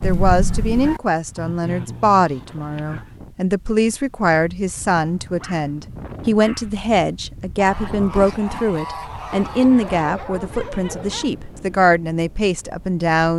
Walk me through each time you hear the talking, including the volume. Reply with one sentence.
The talking can be heard from 0.0 to 13.3 s, at a steady volume.